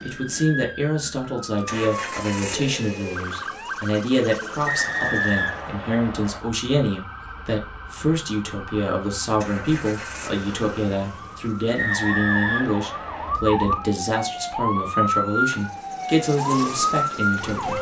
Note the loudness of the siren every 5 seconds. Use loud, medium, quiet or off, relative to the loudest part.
medium, quiet, medium, loud.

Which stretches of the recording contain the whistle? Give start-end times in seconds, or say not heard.
4.7-6.4, 11.8-13.4.